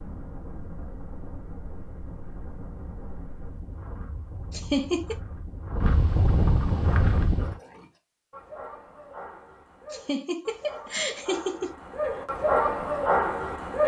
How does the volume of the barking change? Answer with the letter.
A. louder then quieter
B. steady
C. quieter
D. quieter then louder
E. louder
E.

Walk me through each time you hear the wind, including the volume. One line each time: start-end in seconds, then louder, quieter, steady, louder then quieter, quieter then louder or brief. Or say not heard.
0.0-7.5 louder.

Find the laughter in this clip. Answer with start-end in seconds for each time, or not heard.
4.5-5.2, 9.9-11.8.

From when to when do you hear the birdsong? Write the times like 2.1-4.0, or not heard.
not heard.